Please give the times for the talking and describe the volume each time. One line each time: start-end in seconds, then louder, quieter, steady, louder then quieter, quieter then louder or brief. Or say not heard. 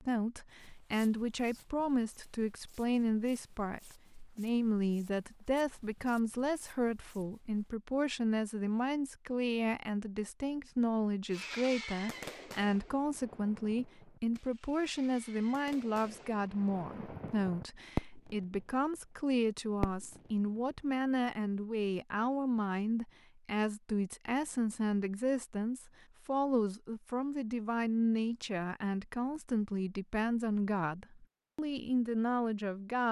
0.0-33.0 steady.